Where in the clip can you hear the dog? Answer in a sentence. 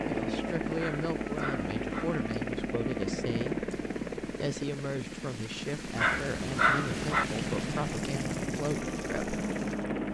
The dog can be heard from 0.8 to 2.0 s and from 6.0 to 7.2 s.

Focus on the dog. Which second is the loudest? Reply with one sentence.
The volume of the dog peaks at 7 seconds.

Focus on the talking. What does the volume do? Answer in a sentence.
The volume of the talking stays about the same.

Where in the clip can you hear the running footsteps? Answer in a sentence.
The running footsteps can't be heard in this clip.